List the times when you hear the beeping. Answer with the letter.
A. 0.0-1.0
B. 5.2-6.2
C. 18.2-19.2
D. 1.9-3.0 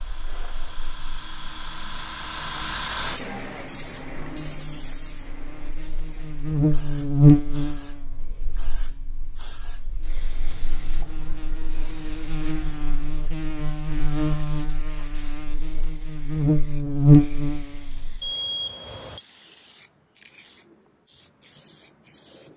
C.